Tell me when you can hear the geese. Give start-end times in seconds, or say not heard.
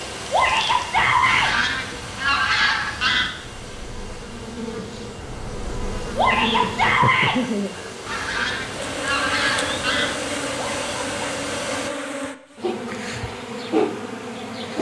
1.2-3.3, 8.1-10.2.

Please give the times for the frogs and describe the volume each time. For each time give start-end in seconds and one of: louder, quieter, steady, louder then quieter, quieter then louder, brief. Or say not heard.
not heard.